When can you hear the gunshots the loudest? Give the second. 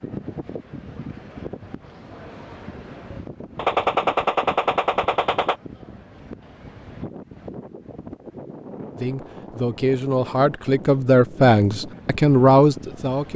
4 s.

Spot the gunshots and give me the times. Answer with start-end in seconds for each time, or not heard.
3.5-5.5.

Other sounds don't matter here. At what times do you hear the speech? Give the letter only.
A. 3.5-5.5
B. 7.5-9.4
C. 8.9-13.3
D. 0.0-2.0
C.